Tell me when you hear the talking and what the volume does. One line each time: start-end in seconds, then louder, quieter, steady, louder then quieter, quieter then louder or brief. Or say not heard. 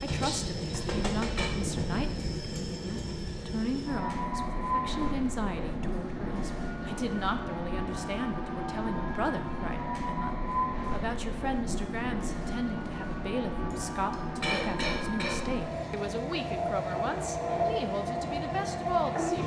0.0-19.4 steady.